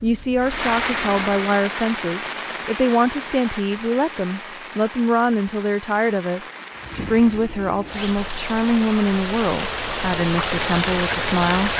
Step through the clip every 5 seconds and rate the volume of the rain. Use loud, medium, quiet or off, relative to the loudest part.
medium, medium, loud.